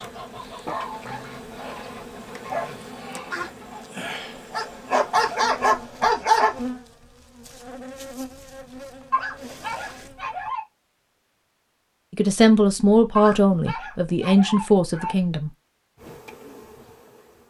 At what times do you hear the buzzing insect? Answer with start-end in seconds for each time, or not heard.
0.0-10.6, 15.9-17.4.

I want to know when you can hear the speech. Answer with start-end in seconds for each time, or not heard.
12.1-15.5.